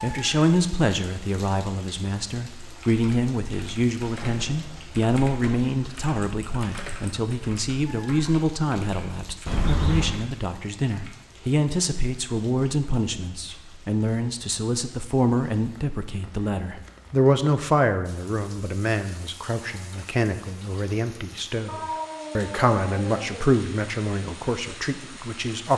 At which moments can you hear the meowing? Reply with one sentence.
You can hear the meowing from 4.2 to 4.8 s, from 9.4 to 10.2 s and from 21.6 to 23.4 s.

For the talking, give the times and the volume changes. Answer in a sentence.
The talking can be heard from 0.0 to 25.7 s, at a steady volume.